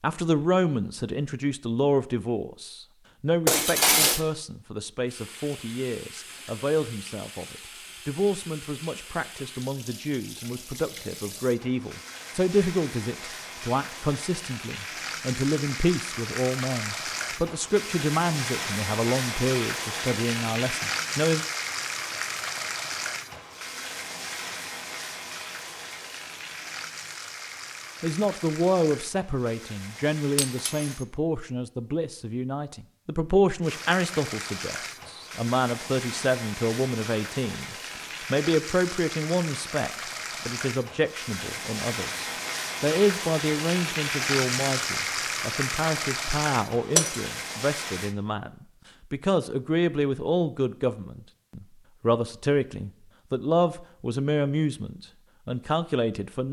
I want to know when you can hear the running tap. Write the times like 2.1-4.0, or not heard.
5.0-31.0, 33.6-48.1.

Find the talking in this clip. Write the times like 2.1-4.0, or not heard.
0.0-21.4, 28.0-56.4.